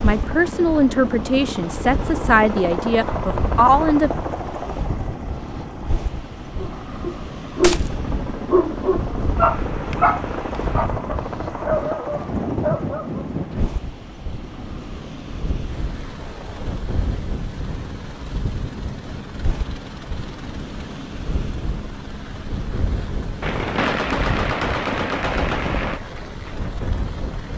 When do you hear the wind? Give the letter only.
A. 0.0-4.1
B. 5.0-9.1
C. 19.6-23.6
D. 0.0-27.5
D.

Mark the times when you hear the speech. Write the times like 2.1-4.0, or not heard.
0.0-4.1.